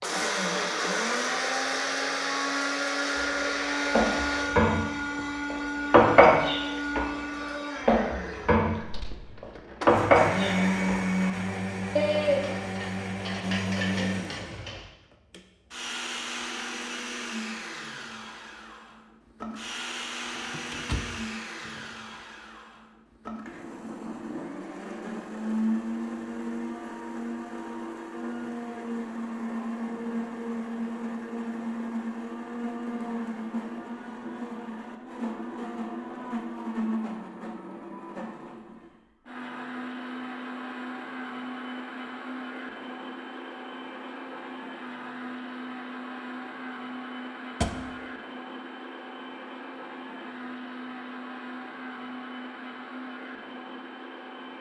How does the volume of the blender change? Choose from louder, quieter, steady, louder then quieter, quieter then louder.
quieter.